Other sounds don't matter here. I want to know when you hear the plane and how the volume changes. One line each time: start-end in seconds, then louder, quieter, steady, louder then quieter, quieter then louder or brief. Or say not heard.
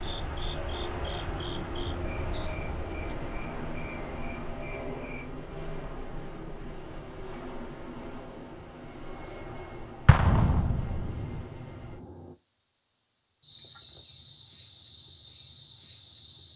0.0-12.3 quieter.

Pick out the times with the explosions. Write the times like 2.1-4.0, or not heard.
10.1-11.4.